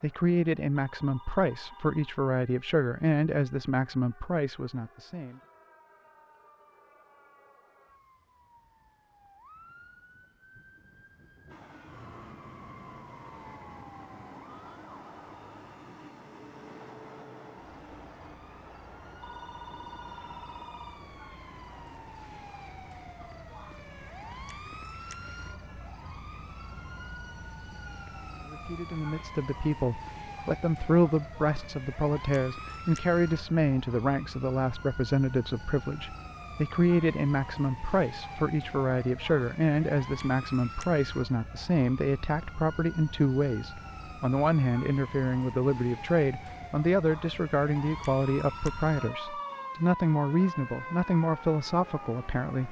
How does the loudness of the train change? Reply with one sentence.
The volume of the train goes down.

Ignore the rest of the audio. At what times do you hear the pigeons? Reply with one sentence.
The pigeons can't be heard in this clip.